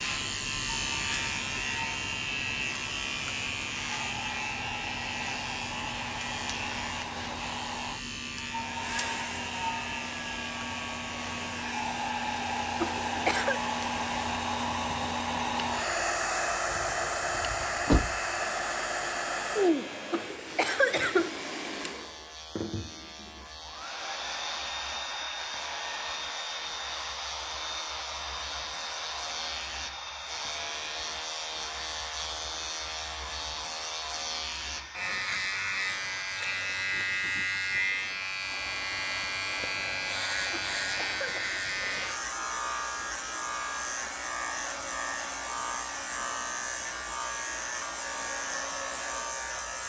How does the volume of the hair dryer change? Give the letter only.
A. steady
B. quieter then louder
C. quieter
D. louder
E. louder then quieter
E.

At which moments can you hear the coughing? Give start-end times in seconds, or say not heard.
12.8-13.6, 20.1-21.3, 40.5-41.6.